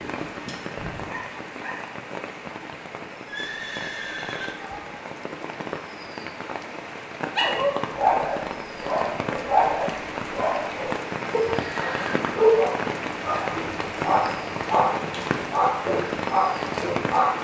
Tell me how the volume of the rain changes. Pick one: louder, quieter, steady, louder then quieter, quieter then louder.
louder.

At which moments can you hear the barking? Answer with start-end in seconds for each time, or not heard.
0.0-1.8, 7.3-17.4.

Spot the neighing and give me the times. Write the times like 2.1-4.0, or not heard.
3.2-4.8, 11.7-12.2.